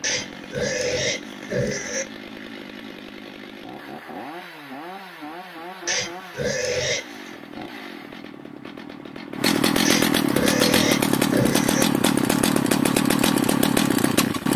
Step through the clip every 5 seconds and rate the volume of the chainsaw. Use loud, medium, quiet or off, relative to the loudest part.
quiet, medium, loud.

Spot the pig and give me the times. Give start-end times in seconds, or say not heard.
0.0-2.0, 5.8-7.4, 9.8-11.8.